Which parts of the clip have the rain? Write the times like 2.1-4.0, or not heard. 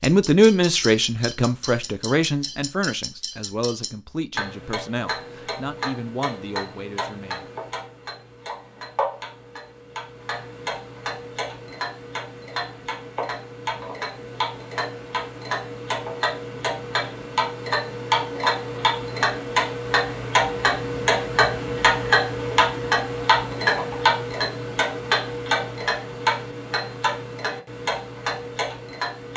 not heard.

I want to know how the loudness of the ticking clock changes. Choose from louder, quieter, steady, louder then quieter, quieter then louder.
louder.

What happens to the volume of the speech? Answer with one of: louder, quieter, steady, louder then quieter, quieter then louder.
quieter.